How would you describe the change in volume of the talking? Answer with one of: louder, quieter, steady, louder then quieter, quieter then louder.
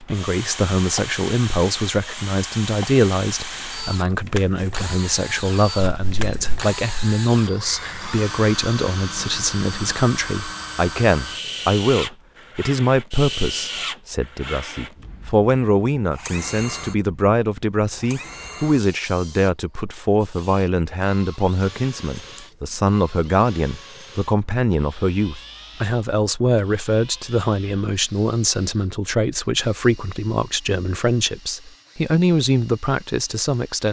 steady.